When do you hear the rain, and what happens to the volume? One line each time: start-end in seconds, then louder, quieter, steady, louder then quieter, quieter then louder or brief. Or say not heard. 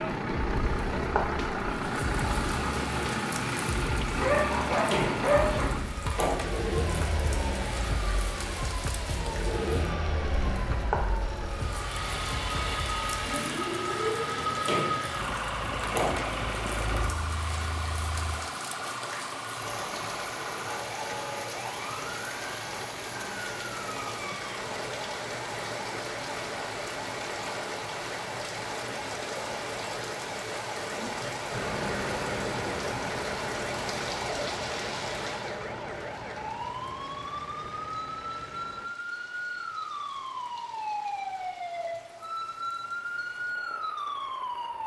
0.0-44.8 quieter.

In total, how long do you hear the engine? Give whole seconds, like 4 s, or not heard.
26 s.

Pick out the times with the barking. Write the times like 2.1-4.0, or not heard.
4.2-5.7.